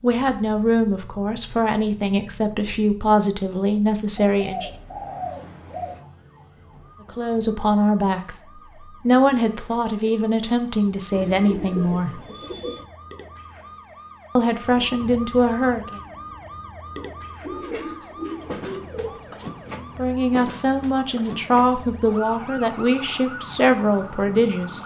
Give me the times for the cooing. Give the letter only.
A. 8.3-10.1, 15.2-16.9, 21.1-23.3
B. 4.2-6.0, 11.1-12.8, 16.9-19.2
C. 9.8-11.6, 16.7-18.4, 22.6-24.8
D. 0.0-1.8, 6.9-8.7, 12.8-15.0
B.